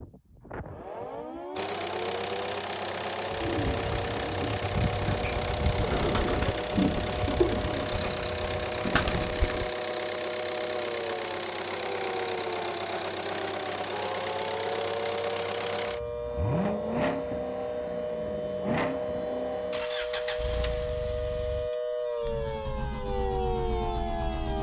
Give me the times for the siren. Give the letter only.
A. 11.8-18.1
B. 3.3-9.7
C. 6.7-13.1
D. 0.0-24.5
D.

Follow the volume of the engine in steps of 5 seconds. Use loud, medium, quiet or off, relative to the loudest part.
loud, loud, loud, loud, medium.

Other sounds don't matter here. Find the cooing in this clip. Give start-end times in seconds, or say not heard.
3.3-9.7.